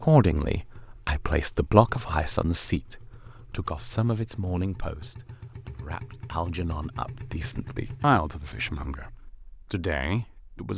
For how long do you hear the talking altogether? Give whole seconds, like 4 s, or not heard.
11 s.